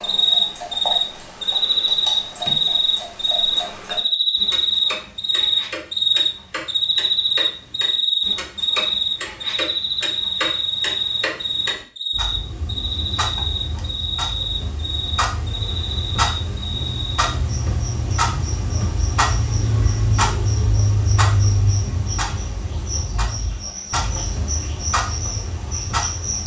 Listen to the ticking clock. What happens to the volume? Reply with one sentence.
The volume of the ticking clock goes up.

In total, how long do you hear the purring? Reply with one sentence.
You can't hear the purring here.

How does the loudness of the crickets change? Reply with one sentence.
The volume of the crickets goes down.